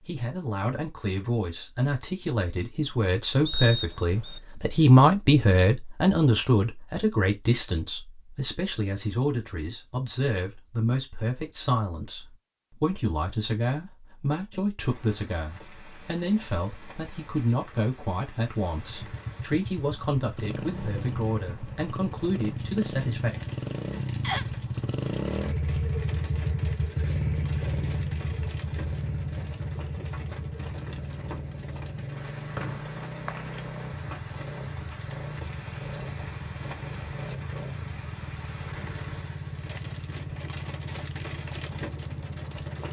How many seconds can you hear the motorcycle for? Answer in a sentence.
You can hear the motorcycle for 24 seconds altogether.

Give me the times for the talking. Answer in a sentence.
You can hear the talking from 0.1 to 23.3 s.